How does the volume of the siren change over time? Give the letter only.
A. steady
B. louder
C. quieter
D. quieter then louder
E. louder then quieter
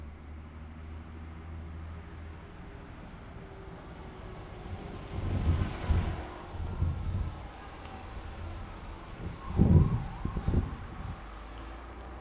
D.